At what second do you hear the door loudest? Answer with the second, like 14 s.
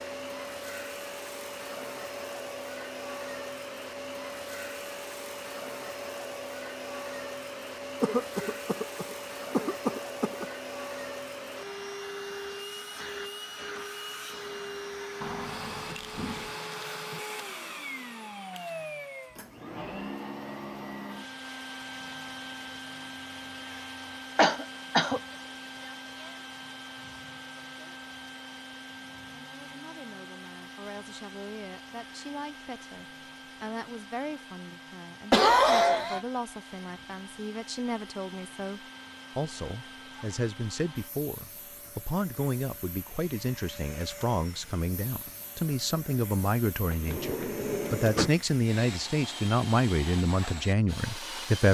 48 s.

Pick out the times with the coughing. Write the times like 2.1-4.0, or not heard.
8.0-10.4, 24.4-25.2, 35.3-36.2.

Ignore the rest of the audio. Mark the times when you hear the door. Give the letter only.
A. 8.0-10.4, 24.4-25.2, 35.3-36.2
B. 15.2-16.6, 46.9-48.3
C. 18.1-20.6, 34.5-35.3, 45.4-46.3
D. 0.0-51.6
B.